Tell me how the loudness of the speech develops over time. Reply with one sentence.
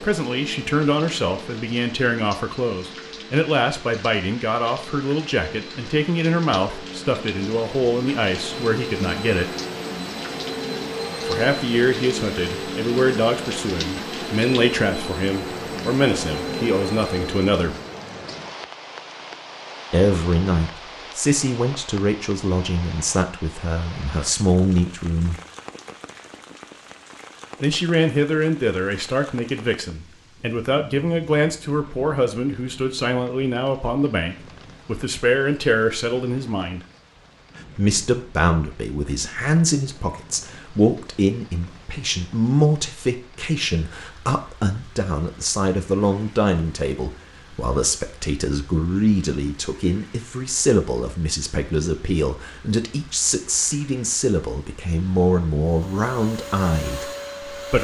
The loudness of the speech stays about the same.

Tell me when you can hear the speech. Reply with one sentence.
You can hear the speech from 0.0 to 9.5 s, from 11.2 to 17.8 s, from 19.9 to 25.4 s, from 27.6 to 36.8 s and from 37.8 to 57.8 s.